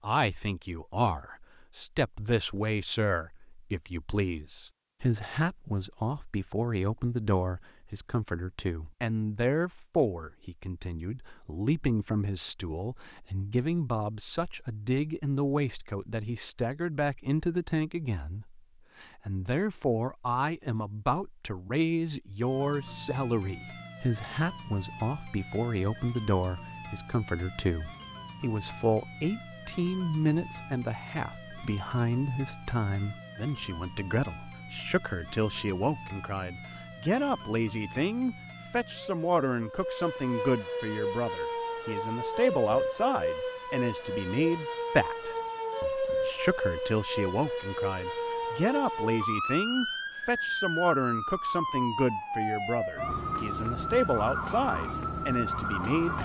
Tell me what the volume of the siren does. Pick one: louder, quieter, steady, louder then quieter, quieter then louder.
louder.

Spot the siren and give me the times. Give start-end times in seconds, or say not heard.
22.4-56.2.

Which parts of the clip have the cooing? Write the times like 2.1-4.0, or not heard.
not heard.